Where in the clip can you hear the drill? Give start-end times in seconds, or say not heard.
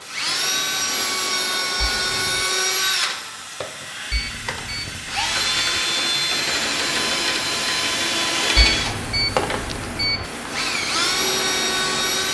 0.0-12.2.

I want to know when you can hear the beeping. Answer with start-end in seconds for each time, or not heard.
1.8-2.3, 4.1-5.8, 8.6-10.2.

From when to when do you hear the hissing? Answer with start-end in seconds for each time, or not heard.
0.0-12.2.